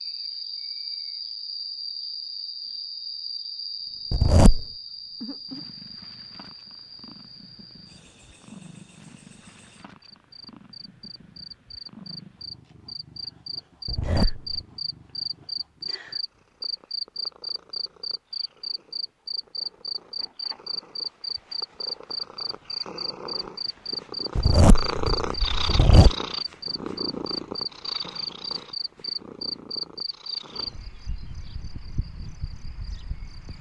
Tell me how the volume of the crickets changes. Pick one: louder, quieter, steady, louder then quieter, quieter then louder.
quieter then louder.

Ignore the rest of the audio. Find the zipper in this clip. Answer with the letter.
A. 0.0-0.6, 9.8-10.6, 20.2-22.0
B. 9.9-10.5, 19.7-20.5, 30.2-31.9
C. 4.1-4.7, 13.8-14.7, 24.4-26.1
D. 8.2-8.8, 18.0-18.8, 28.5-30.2
C.